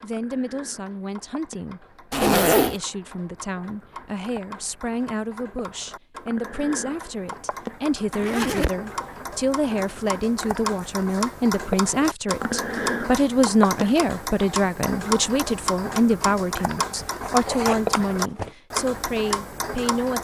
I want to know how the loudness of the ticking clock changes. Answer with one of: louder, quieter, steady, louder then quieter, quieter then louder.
louder.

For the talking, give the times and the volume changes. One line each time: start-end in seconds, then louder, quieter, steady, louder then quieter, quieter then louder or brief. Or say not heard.
0.0-20.1 louder.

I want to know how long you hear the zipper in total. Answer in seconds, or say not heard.
3 s.